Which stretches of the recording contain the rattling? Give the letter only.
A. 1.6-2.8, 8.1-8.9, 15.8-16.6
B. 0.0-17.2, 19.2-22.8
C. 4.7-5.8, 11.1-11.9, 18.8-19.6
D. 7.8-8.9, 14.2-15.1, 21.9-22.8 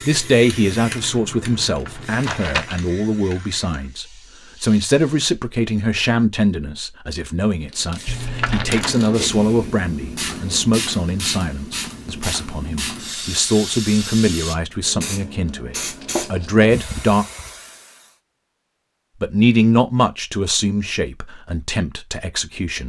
A.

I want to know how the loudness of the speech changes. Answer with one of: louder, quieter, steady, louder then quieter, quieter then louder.
steady.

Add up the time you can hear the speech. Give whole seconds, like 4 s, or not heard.
21 s.